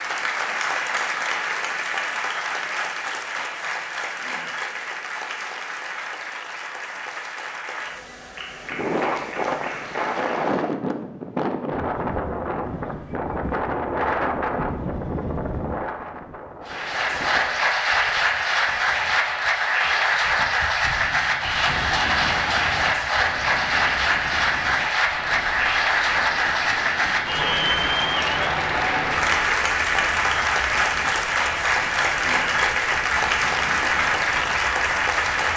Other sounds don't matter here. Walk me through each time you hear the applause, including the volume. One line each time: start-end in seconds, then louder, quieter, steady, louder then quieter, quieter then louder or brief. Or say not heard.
0.0-10.8 quieter
16.6-35.5 steady.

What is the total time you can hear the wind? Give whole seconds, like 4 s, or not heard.
27 s.